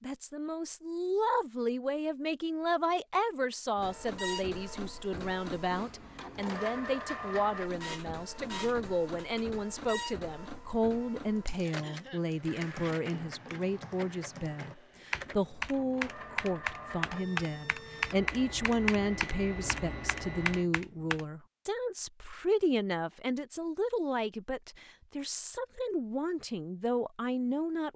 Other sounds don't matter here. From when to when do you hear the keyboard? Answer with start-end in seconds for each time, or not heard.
11.3-21.2.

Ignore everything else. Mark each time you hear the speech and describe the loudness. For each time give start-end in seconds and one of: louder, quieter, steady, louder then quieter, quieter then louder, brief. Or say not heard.
0.0-27.9 steady.